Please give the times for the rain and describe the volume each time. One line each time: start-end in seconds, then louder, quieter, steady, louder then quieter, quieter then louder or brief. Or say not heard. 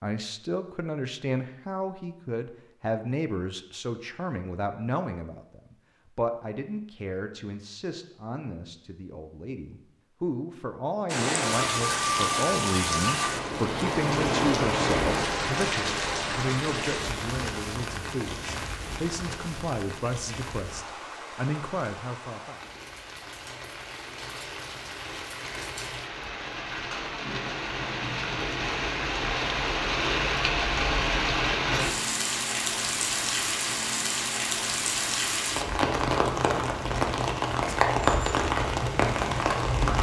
11.1-39.9 quieter then louder.